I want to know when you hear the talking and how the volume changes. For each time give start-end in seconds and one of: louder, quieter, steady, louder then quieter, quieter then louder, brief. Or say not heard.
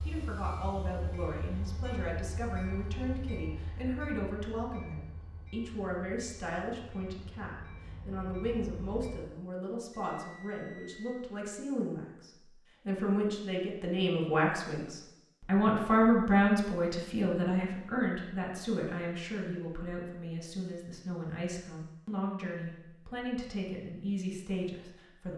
0.0-25.3 louder then quieter.